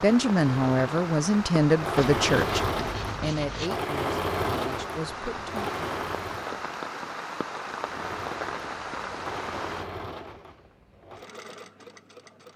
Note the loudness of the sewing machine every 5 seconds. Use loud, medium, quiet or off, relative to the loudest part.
loud, medium, quiet.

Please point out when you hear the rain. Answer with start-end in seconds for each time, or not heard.
0.0-9.9.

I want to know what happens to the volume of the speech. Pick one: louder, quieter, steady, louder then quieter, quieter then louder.
quieter.